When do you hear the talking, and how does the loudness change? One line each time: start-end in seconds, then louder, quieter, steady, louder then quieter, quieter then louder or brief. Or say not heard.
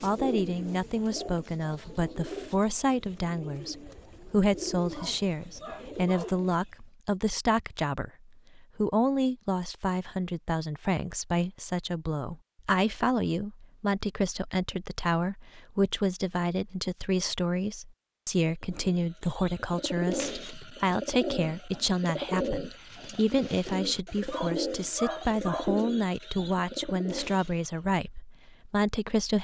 0.0-29.3 steady.